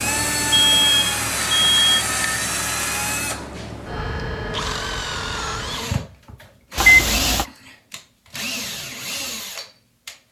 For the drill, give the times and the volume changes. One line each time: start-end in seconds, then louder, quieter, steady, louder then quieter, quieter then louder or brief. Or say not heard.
0.0-10.2 quieter.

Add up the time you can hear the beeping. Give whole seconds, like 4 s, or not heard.
2 s.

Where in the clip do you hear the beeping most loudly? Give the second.
7 s.